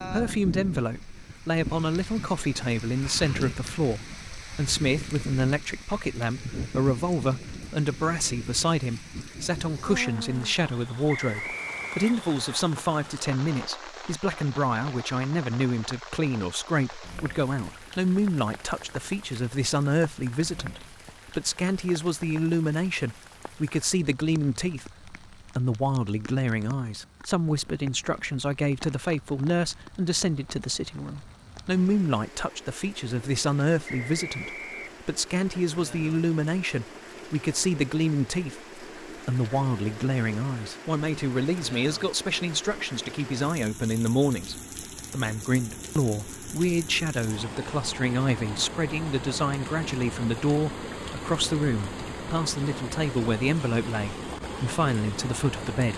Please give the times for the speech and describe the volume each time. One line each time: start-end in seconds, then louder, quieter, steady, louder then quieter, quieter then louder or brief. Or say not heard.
0.0-55.9 steady.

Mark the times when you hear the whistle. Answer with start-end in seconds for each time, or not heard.
11.1-12.6, 33.9-35.0.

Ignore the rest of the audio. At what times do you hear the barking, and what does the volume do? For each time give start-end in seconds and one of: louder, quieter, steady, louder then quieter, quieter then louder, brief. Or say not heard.
not heard.